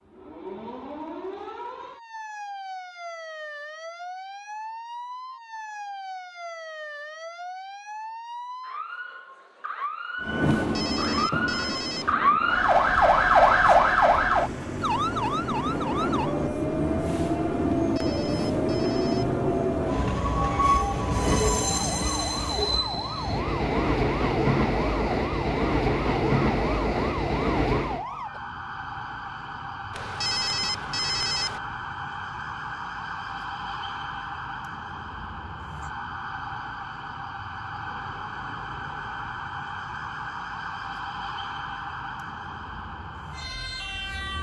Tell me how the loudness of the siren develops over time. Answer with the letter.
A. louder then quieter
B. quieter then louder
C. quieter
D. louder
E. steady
A.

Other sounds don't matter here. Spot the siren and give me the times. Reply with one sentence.
You can hear the siren from 0.0 to 44.3 s.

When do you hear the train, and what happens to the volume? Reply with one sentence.
You can hear the train from 10.2 to 28.1 s, getting louder.